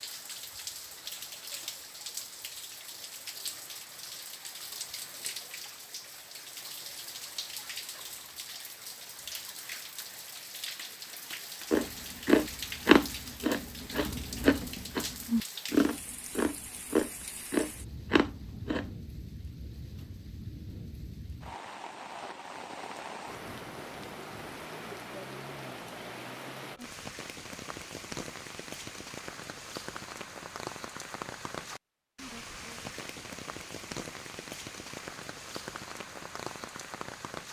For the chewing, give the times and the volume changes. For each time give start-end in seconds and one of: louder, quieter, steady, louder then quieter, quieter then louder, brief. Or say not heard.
11.7-18.9 quieter.